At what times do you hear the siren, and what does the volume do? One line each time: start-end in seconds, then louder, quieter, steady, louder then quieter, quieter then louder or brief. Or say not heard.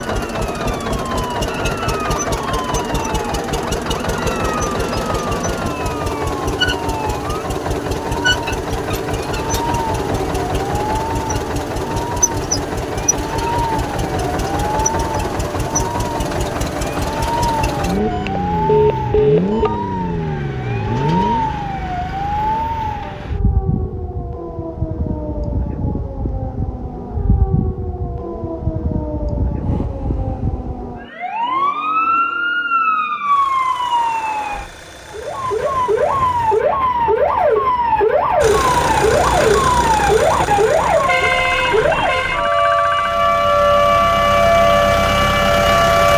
0.0-46.1 louder.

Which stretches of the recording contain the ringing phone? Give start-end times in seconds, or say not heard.
18.1-19.8.